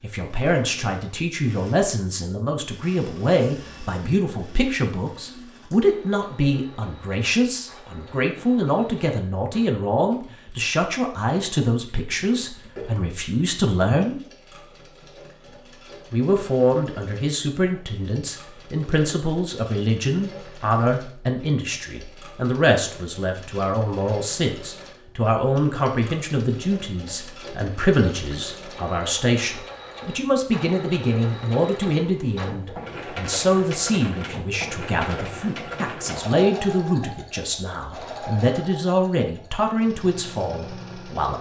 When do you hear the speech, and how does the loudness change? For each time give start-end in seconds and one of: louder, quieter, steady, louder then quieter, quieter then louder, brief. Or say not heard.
0.0-14.2 steady
16.1-41.3 steady.